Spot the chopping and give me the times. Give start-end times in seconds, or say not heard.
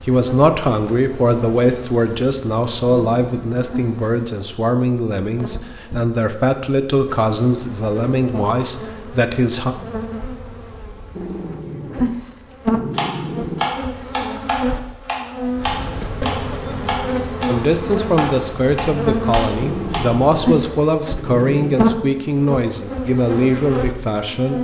12.9-20.1.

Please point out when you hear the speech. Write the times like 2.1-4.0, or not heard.
0.0-9.8, 17.4-24.5.